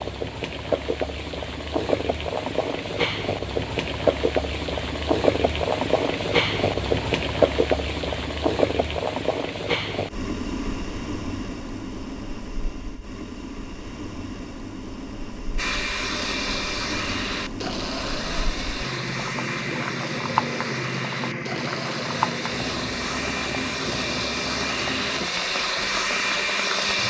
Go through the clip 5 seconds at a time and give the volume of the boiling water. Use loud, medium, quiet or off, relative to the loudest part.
loud, loud, medium, medium, medium, medium.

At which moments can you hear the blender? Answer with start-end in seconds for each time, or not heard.
15.6-27.0.